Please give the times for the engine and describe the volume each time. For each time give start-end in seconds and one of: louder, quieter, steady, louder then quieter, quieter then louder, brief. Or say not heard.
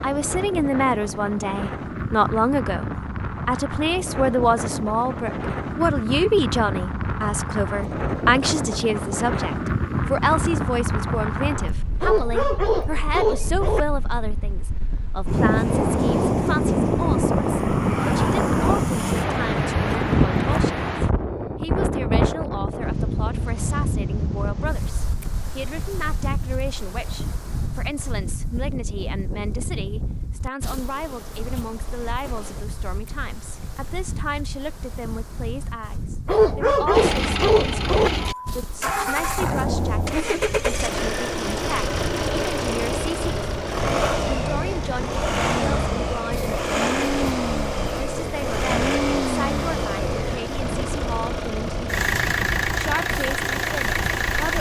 36.9-54.5 steady.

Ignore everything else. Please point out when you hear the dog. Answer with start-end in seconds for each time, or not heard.
12.0-13.8, 36.2-38.1.